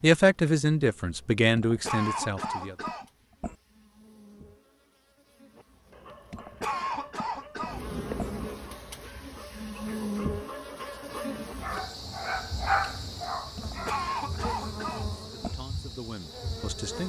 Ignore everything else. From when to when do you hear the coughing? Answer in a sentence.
The coughing can be heard from 1.6 to 3.5 s, from 6.3 to 8.3 s and from 13.6 to 15.6 s.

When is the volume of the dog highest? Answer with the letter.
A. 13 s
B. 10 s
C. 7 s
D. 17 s
A.